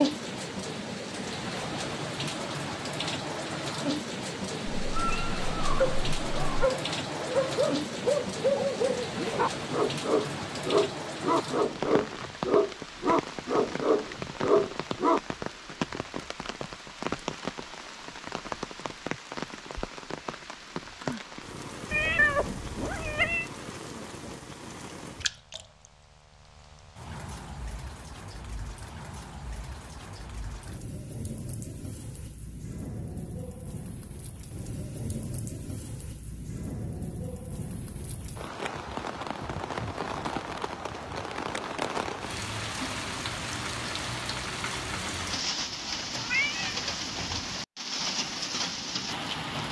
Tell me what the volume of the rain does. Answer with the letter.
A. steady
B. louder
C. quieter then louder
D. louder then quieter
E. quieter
C.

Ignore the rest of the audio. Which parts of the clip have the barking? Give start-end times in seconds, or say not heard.
5.8-15.2.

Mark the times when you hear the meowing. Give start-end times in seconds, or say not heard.
4.8-6.7, 21.9-23.4, 46.2-47.4.